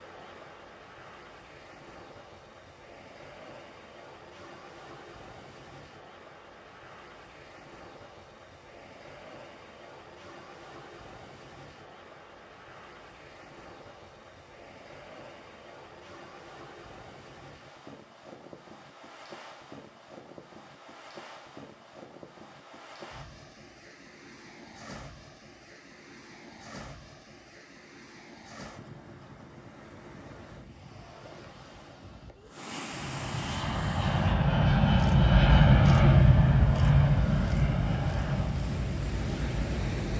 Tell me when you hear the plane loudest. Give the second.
36 s.